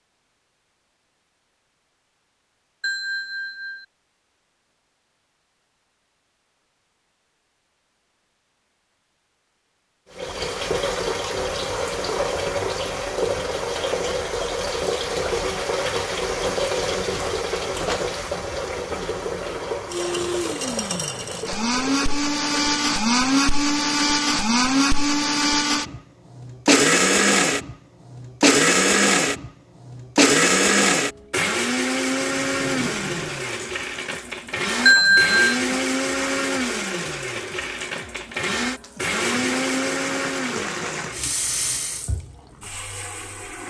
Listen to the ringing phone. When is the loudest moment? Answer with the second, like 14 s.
35 s.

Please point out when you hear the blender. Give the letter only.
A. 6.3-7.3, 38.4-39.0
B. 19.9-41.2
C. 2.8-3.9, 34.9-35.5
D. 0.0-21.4
B.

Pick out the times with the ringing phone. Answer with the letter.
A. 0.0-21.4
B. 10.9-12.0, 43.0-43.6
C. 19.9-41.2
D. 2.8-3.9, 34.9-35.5
D.